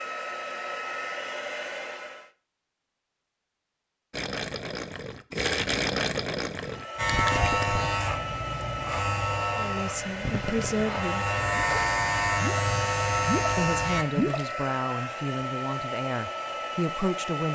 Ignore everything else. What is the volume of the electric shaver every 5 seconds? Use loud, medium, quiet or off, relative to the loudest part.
off, loud, loud, off.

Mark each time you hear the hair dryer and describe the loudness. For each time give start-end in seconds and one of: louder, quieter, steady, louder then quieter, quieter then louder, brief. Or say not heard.
0.0-2.3 brief
6.5-17.5 steady.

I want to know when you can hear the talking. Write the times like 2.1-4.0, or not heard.
9.6-11.3, 13.6-17.5.